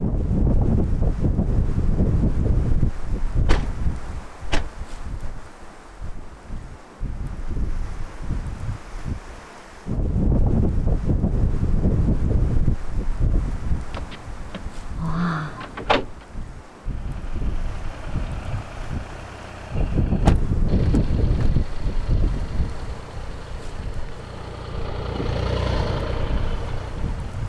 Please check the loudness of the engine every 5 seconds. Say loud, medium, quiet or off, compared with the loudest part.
off, off, off, quiet, medium, loud.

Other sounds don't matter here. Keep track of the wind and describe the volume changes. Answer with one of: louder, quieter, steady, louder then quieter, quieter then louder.
quieter.